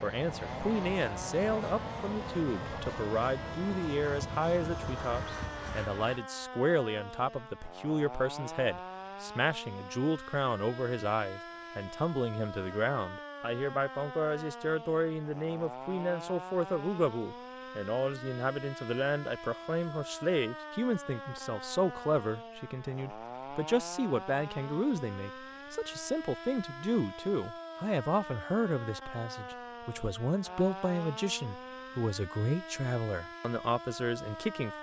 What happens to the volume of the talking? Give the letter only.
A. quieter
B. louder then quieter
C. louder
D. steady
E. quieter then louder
D.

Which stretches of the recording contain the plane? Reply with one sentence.
You can hear the plane from 0.0 to 6.2 s.